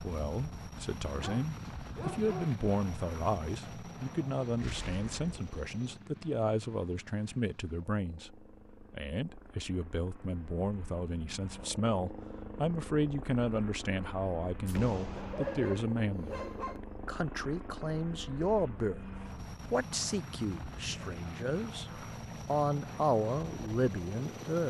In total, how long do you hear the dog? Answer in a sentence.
The dog can be heard for 3 seconds in total.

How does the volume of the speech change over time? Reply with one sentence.
The loudness of the speech stays about the same.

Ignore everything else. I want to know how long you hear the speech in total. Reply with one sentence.
You can hear the speech for 24 seconds altogether.